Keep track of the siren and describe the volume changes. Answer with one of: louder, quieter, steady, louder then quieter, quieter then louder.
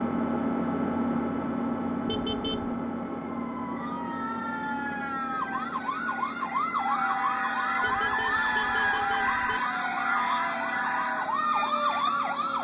louder.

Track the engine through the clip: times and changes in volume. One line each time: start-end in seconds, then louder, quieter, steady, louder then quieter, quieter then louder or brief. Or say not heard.
0.0-12.6 quieter.